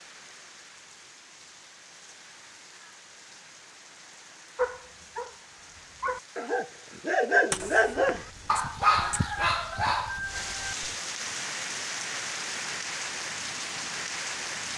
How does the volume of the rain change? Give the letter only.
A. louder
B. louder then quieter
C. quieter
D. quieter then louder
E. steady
A.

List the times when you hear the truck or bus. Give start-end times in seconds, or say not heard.
not heard.